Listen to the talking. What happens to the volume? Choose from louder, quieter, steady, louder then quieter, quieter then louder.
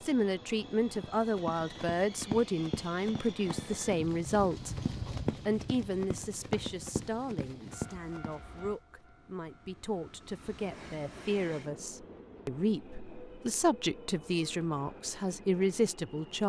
quieter then louder.